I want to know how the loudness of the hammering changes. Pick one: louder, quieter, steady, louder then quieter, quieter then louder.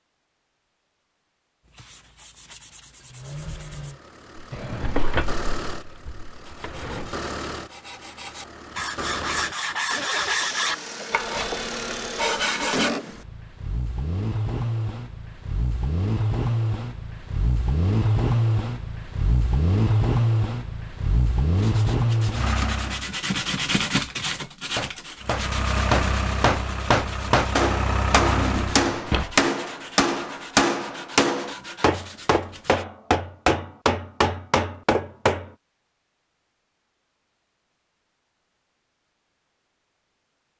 steady.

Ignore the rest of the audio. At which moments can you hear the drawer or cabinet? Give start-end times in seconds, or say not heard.
4.5-7.2, 28.1-29.3.